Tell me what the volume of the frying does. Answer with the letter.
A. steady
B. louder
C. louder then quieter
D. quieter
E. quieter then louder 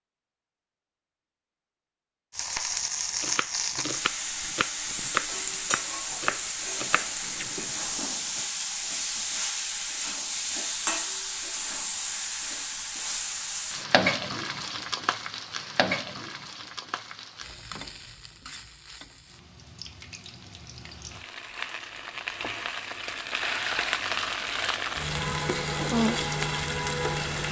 E.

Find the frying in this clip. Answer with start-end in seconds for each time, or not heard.
2.3-27.4.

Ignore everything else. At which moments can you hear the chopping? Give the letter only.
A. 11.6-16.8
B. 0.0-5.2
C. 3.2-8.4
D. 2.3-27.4
C.